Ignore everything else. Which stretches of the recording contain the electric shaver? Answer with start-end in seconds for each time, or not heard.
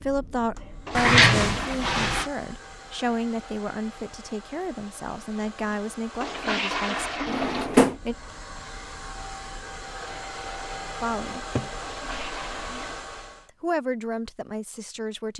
not heard.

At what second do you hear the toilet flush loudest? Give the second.
7 s.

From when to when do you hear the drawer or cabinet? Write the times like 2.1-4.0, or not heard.
0.9-2.3, 7.2-8.0, 11.3-11.8.